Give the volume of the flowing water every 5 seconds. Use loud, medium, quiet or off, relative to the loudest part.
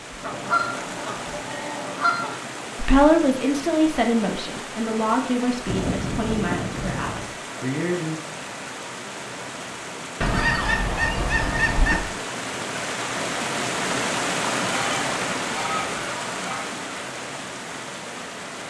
medium, medium, loud, loud.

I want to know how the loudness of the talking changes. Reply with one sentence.
The volume of the talking goes down.